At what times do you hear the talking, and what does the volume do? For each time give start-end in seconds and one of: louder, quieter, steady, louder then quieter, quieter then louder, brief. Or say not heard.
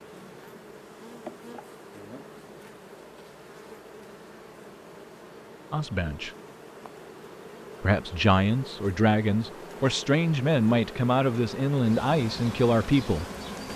5.7-6.3 brief
7.8-13.2 steady.